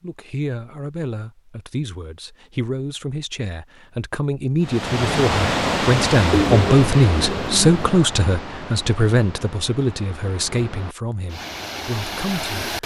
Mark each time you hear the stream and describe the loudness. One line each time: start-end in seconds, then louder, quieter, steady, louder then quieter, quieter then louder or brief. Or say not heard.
4.6-12.8 quieter then louder.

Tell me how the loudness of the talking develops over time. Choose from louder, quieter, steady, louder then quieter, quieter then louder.
louder then quieter.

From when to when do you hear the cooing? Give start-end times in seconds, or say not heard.
6.3-8.0.